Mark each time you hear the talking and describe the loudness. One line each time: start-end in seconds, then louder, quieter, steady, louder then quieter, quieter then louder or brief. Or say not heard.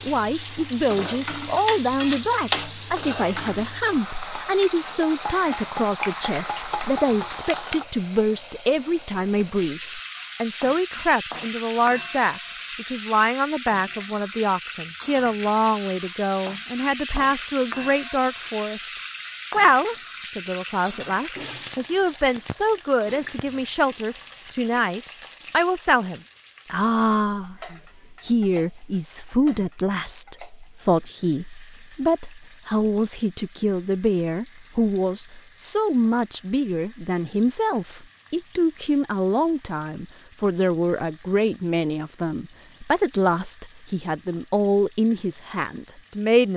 0.0-46.5 steady.